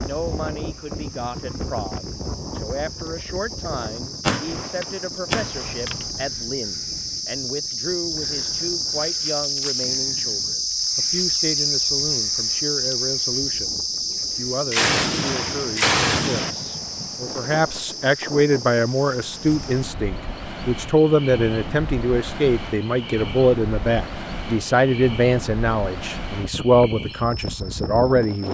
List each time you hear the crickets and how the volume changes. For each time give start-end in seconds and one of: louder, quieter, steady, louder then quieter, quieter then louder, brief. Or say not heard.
0.0-28.3 louder then quieter.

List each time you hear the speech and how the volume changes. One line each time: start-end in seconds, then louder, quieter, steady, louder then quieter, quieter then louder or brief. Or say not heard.
0.0-28.4 louder.